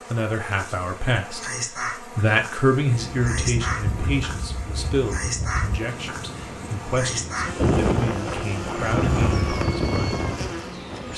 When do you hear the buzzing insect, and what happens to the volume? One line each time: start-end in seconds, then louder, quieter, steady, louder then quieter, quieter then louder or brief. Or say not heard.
0.0-11.1 steady.